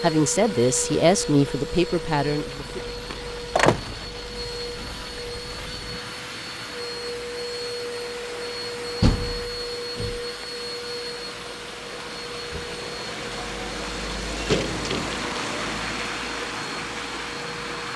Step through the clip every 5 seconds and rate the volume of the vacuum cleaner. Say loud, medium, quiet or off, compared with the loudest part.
loud, loud, loud, medium.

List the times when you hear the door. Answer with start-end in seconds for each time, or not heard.
3.1-4.0, 9.0-10.2, 14.3-15.2.